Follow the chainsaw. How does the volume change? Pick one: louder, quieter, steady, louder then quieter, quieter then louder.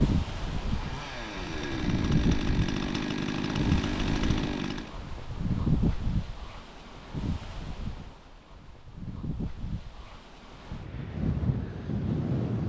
louder.